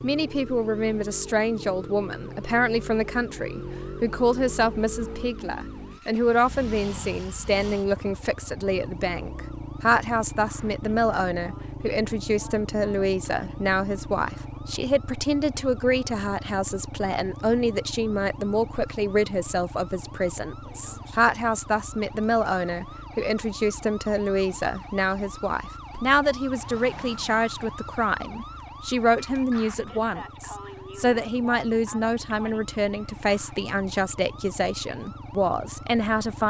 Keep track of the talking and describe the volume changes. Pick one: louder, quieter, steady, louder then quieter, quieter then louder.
steady.